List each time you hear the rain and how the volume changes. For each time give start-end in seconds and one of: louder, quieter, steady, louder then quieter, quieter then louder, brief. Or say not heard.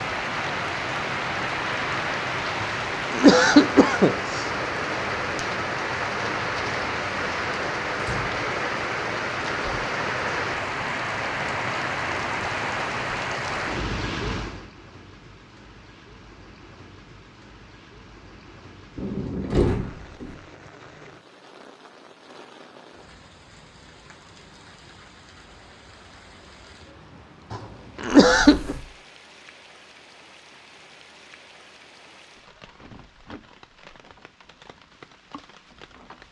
0.0-36.2 quieter.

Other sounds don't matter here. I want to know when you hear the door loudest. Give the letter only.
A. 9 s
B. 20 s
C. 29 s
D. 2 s
B.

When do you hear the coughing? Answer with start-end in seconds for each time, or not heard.
2.6-4.4, 27.5-28.8.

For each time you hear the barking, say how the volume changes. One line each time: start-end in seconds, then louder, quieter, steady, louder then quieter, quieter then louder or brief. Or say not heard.
not heard.